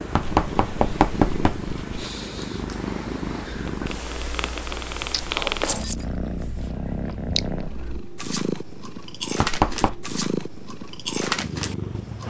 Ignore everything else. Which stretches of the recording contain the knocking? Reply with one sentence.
You can hear the knocking from 0.1 to 2.0 s and from 9.4 to 10.0 s.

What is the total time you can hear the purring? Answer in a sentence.
You can hear the purring for 12 seconds altogether.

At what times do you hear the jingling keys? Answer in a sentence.
You can hear the jingling keys from 5.6 to 6.0 s.